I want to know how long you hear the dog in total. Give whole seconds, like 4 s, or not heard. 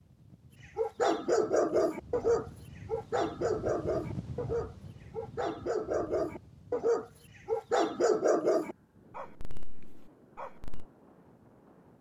10 s.